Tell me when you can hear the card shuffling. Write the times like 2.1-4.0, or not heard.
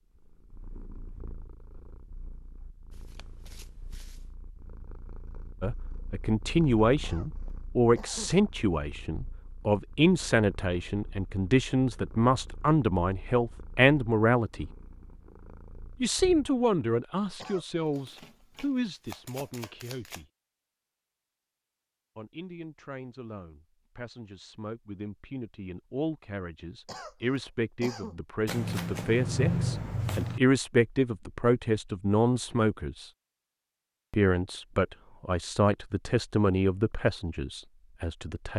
2.9-4.2, 17.9-20.2, 28.4-30.4.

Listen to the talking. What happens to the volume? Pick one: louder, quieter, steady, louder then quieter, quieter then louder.
quieter then louder.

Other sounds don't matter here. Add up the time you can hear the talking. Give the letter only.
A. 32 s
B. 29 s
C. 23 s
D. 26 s
B.